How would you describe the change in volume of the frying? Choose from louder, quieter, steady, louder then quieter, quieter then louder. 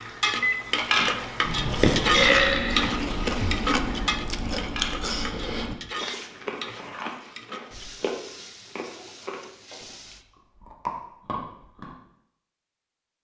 quieter.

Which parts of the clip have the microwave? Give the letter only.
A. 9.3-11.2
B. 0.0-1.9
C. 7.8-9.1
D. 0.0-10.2
B.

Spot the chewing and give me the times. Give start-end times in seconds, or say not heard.
1.4-11.9.